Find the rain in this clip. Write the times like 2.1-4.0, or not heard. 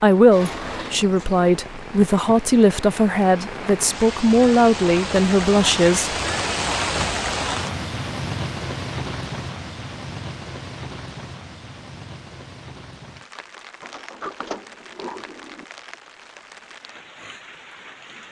0.0-18.2.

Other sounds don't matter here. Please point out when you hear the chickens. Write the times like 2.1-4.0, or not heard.
not heard.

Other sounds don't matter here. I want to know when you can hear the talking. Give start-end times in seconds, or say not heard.
0.0-6.2.